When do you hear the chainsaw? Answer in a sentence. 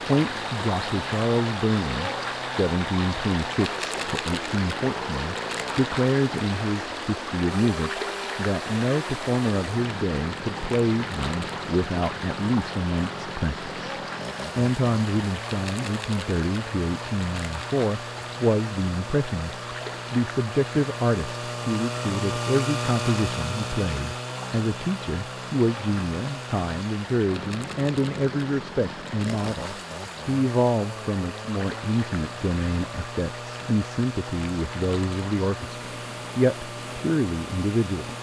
You can hear the chainsaw from 0.0 to 38.1 s.